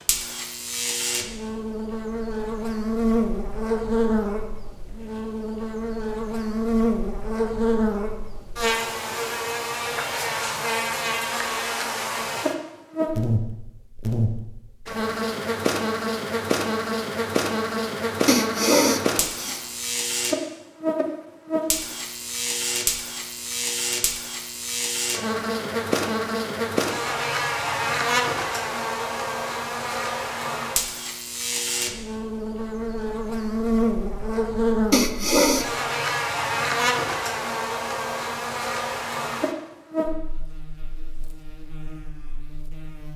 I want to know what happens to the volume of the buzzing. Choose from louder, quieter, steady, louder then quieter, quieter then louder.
steady.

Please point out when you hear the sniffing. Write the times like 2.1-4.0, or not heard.
18.2-19.6, 34.9-35.6.